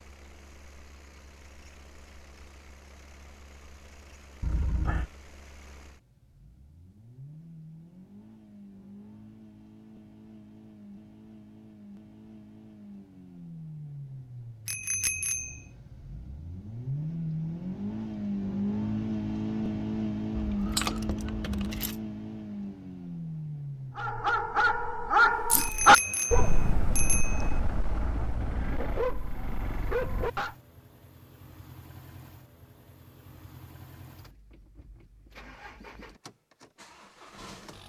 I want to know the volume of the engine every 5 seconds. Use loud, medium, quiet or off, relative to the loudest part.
quiet, quiet, quiet, loud, loud, quiet, quiet, quiet.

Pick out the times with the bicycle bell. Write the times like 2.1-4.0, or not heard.
14.7-15.6, 25.6-27.6.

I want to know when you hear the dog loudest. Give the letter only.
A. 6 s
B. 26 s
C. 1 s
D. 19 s
B.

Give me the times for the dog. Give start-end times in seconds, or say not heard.
23.9-30.6.